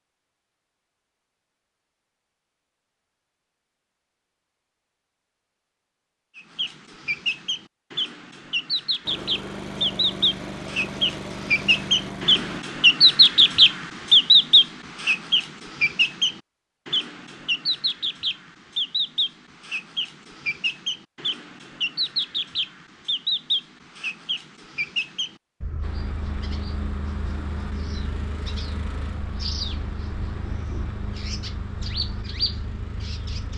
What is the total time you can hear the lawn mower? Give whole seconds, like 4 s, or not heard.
11 s.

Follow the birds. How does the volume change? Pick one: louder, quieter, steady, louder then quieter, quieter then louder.
louder then quieter.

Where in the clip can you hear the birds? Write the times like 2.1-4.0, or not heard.
6.3-33.5.